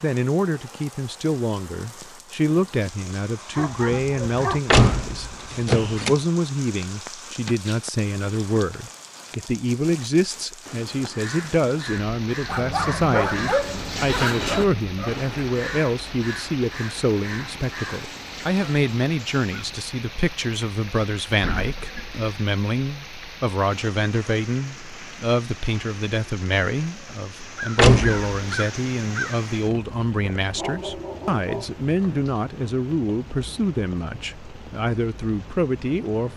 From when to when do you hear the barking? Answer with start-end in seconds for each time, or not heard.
3.5-4.6, 12.4-15.2, 30.6-32.2.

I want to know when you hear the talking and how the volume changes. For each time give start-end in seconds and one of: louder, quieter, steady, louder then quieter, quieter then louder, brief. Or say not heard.
0.0-36.3 steady.